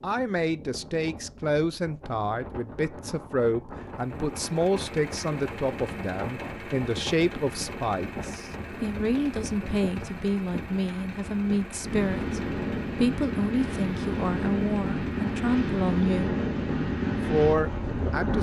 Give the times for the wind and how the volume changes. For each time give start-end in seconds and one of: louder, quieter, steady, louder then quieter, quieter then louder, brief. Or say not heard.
0.0-18.3 louder.